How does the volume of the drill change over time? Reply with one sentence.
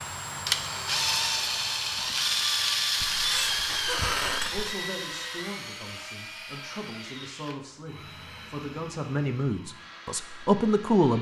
The loudness of the drill goes down.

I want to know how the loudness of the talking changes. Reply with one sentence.
The volume of the talking goes up.